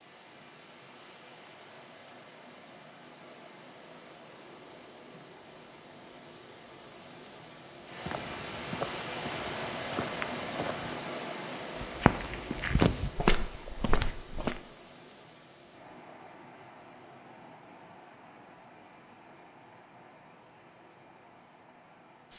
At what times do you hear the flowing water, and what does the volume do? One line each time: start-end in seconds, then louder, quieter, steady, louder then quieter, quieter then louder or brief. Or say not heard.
0.0-22.3 louder then quieter.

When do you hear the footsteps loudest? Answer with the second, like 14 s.
13 s.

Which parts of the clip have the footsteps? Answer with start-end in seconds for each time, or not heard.
8.0-14.6.